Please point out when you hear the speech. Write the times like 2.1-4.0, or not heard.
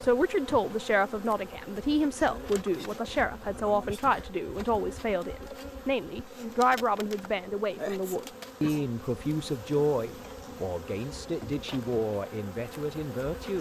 0.0-13.5.